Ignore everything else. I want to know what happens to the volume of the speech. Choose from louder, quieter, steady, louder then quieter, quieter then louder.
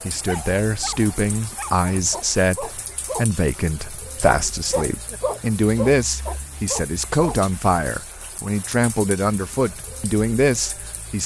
steady.